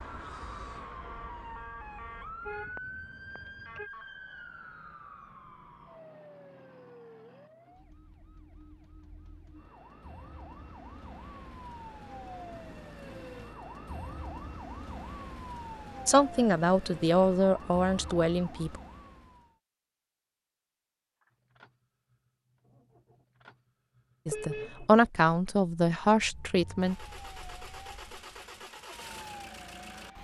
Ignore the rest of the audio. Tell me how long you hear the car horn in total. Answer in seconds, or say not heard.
2 s.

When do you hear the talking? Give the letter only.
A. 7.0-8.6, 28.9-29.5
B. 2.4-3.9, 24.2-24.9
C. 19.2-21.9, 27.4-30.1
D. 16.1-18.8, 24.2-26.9
D.